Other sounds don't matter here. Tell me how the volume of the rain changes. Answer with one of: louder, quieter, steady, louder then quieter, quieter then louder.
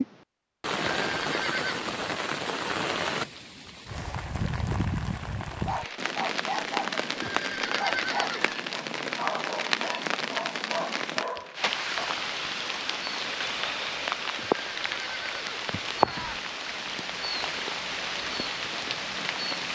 steady.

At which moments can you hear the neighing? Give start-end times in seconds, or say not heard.
0.8-1.8, 7.2-8.6, 14.3-16.4.